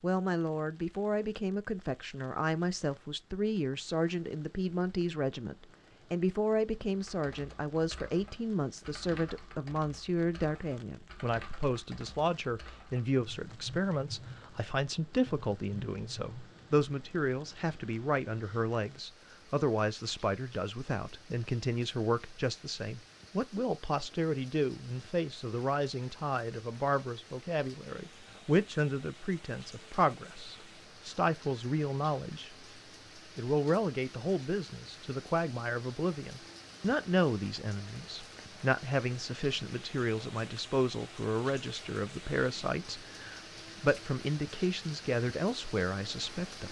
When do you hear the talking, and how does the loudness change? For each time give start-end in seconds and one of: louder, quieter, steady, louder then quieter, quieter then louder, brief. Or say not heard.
0.0-32.5 steady
33.4-46.6 steady.